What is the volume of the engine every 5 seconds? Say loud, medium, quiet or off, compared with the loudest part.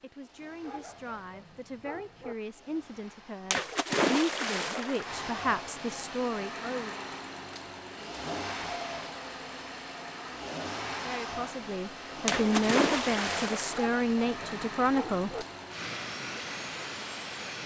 quiet, loud, loud, loud.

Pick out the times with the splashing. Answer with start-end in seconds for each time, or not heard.
3.5-5.1, 12.2-13.9.